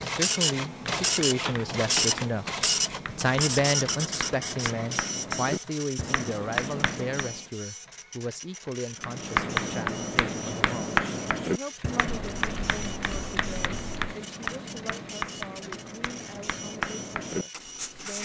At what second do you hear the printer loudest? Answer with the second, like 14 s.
2 s.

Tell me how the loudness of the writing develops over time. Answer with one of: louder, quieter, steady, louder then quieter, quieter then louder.
louder then quieter.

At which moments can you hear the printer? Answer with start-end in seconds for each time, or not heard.
0.0-18.2.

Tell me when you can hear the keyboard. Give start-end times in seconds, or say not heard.
0.6-2.4, 12.1-14.2.